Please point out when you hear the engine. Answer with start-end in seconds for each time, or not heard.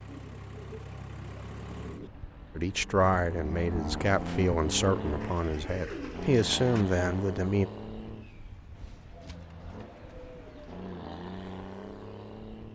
0.0-12.7.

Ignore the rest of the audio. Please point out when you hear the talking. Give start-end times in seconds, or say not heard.
2.5-7.7.